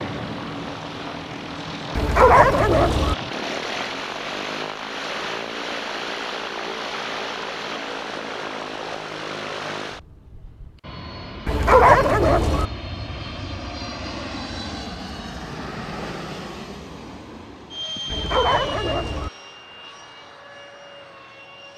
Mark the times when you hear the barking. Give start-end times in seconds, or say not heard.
1.9-3.1, 11.4-12.7, 18.1-19.3.